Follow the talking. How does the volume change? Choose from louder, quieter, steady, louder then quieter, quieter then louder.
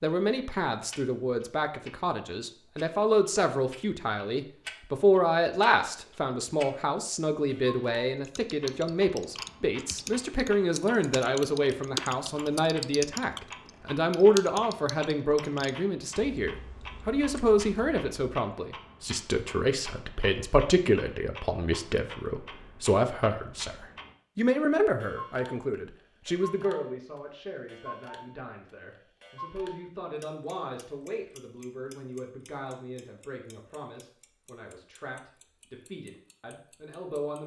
quieter.